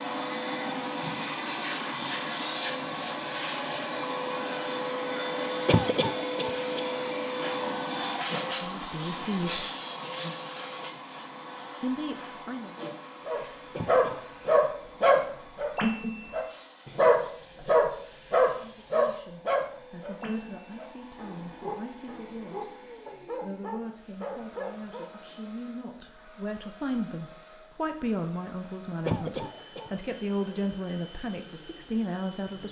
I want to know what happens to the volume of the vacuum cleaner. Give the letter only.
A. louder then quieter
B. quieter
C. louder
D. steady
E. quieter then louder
B.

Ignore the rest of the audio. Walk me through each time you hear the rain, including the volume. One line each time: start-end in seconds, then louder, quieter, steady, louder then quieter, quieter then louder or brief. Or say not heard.
not heard.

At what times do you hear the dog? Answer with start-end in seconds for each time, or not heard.
13.2-25.2.